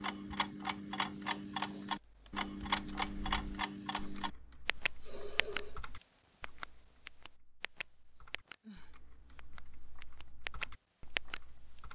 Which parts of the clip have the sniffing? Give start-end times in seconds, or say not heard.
1.1-1.9, 5.0-5.8, 8.2-9.4.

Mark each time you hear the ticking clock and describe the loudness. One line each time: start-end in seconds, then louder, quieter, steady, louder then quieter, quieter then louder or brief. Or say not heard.
0.0-5.6 steady
6.4-8.6 brief
9.3-11.4 brief.